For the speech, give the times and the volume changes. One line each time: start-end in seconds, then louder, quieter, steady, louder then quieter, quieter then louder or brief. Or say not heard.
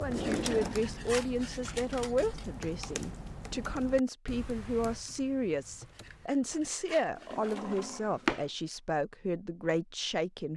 0.0-10.5 steady.